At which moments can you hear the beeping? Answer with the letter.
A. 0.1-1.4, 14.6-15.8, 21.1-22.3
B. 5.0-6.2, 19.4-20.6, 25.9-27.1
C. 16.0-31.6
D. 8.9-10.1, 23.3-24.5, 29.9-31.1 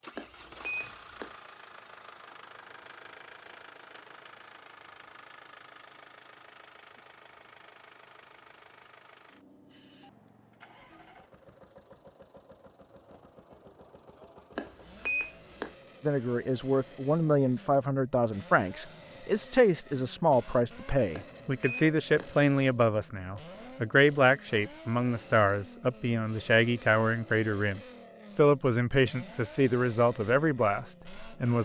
A.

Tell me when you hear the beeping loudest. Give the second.
15 s.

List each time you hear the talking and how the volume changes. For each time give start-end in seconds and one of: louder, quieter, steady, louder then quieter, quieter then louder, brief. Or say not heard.
16.0-31.6 steady.